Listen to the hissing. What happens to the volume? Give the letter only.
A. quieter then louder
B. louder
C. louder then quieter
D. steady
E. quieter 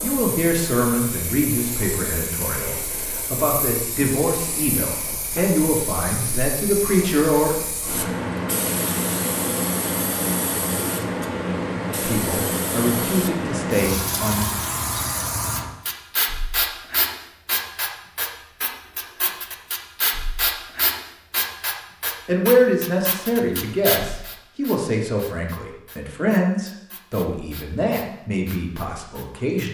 C.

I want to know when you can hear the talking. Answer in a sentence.
You can hear the talking from 0.0 to 7.7 s, from 12.0 to 14.5 s and from 22.2 to 29.6 s.